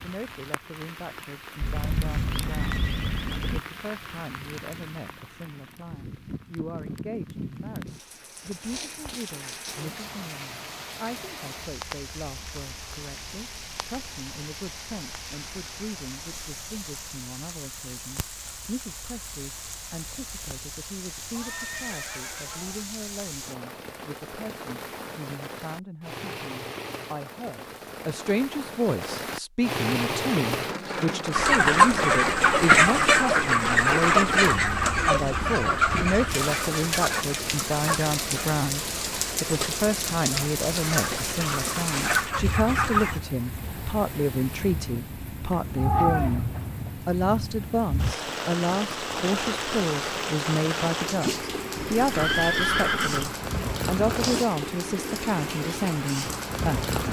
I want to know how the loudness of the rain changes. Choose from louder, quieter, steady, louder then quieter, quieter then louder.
louder.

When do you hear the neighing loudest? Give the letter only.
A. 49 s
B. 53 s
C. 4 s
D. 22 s
B.